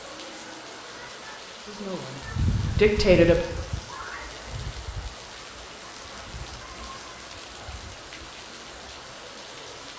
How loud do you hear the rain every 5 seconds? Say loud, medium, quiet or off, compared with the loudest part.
loud, medium.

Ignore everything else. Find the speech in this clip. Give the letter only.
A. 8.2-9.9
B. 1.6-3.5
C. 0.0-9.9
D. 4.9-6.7
B.